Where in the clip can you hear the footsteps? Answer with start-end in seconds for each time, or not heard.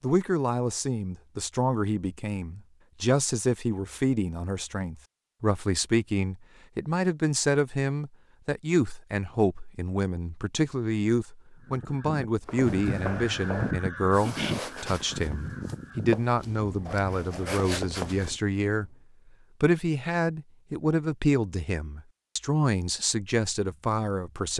12.4-18.4.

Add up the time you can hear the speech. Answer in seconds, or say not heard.
24 s.